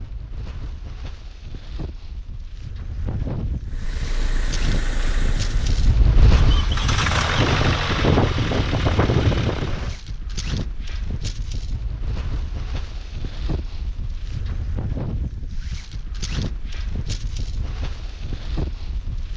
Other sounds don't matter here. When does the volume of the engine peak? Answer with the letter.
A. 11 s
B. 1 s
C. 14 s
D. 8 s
D.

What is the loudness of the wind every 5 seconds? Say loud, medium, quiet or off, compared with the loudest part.
medium, loud, medium, medium.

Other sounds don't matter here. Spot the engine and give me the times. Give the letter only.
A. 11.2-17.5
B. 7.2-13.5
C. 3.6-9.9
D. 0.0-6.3
C.